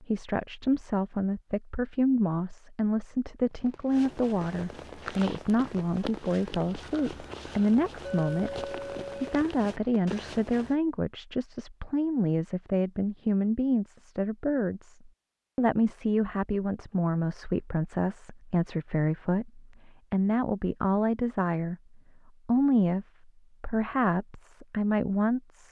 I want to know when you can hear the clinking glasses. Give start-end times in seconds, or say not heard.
8.1-9.4.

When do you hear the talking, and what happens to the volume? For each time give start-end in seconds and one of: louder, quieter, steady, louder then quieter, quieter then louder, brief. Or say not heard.
0.0-25.6 steady.